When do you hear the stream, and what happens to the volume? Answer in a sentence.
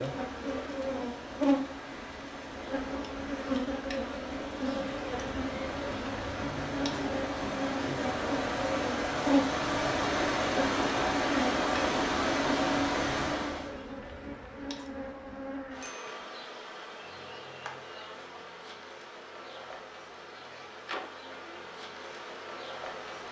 You can hear the stream from 0.0 to 13.8 s, getting louder.